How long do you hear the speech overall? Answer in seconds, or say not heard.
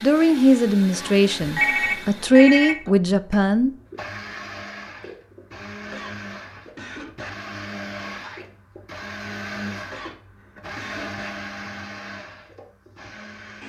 4 s.